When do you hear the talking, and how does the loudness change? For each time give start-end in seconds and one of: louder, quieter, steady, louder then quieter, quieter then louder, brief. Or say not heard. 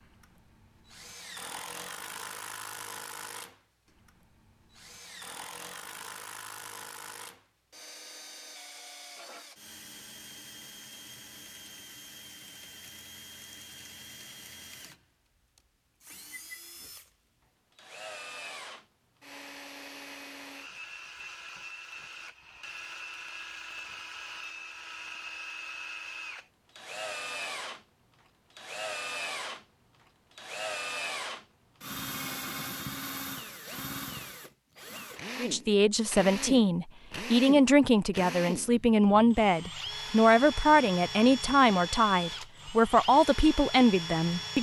35.4-44.5 steady.